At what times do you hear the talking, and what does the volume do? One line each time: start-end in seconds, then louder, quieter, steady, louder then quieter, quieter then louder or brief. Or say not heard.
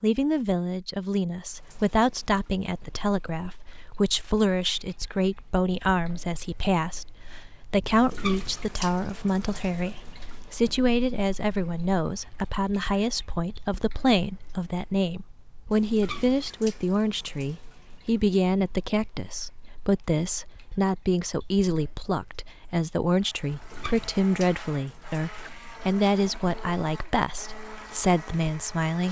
0.0-29.0 steady.